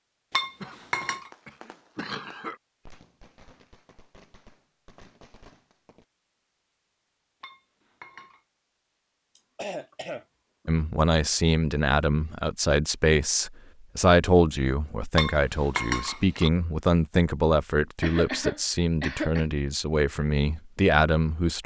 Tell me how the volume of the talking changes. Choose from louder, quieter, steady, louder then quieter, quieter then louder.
steady.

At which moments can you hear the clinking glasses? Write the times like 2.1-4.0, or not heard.
0.3-1.3, 7.4-8.4, 15.2-16.5.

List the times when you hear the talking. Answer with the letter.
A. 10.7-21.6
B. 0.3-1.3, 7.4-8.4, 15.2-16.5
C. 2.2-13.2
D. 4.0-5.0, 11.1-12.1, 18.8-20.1
A.